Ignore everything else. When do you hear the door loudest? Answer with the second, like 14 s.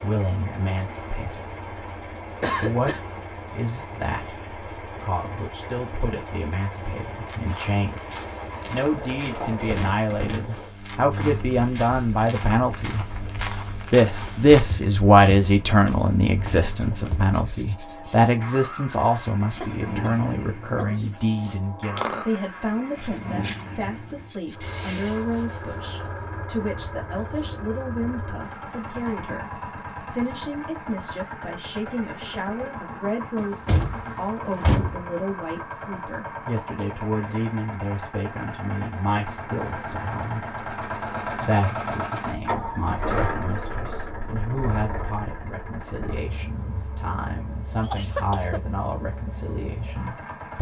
35 s.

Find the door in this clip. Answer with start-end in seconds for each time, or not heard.
8.8-10.7, 33.4-35.0.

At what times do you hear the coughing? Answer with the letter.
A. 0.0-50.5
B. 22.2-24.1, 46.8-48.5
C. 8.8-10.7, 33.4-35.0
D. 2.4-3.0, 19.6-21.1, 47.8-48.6
D.